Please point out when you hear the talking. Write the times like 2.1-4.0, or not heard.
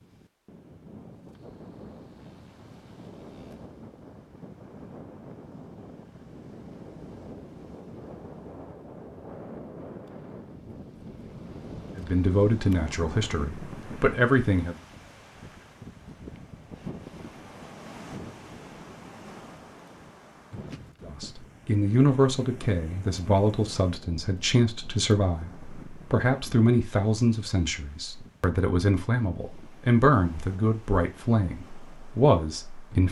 11.9-14.8, 21.0-33.0.